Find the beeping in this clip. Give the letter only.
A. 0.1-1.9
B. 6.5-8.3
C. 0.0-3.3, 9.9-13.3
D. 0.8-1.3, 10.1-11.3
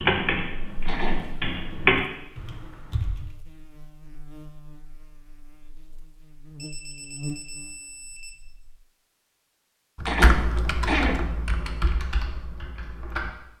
B.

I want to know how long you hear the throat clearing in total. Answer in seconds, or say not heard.
2 s.